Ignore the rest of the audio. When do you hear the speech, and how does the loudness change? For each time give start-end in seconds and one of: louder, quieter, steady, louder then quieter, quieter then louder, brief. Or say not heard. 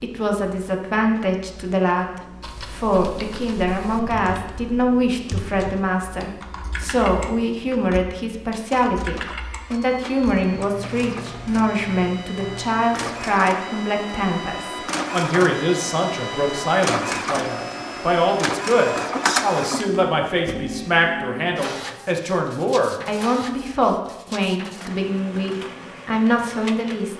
0.0-27.1 steady.